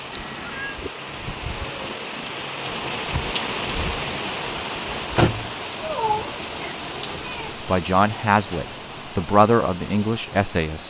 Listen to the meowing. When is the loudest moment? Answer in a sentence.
The volume of the meowing peaks at 6 seconds.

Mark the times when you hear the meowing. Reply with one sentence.
You can hear the meowing from 0.1 to 0.8 s and from 5.8 to 7.6 s.